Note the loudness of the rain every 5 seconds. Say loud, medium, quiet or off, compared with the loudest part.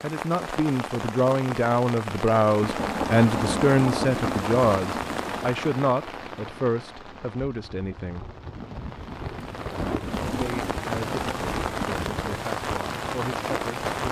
loud, medium, loud.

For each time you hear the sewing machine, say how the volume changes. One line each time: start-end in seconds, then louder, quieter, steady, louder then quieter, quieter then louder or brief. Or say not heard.
not heard.